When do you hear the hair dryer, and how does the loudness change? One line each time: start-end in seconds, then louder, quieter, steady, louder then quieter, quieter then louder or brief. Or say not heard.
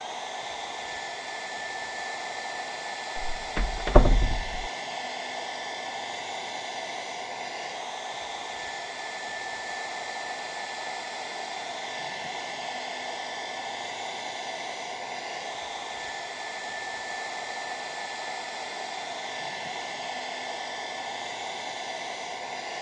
0.0-22.7 steady.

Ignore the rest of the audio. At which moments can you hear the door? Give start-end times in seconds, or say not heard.
3.1-4.5.